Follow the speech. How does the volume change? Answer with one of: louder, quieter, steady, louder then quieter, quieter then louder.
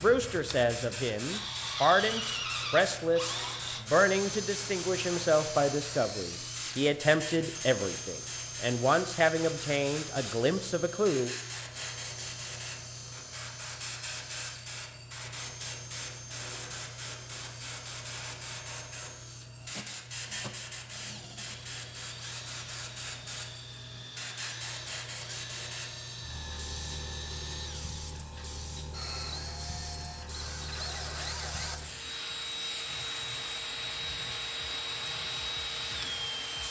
steady.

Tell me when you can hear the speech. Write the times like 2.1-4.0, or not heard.
0.0-11.3.